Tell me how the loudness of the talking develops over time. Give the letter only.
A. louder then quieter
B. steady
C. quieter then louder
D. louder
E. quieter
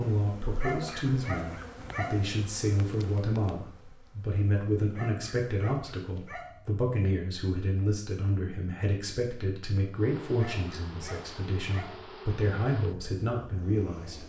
B.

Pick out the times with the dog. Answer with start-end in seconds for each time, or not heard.
0.6-2.4, 5.0-6.7, 10.3-12.2.